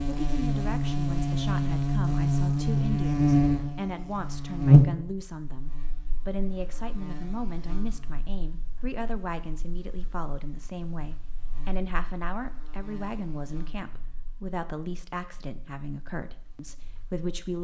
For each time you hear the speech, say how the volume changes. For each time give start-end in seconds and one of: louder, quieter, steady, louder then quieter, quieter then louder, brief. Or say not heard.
0.1-17.5 steady.